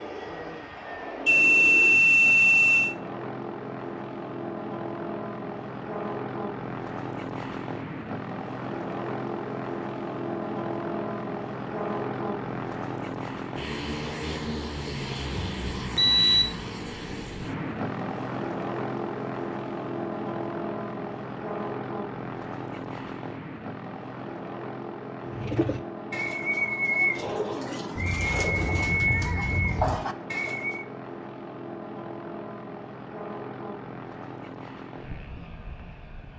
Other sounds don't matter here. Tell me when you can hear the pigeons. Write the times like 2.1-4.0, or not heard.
25.2-30.9.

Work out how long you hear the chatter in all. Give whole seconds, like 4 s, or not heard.
not heard.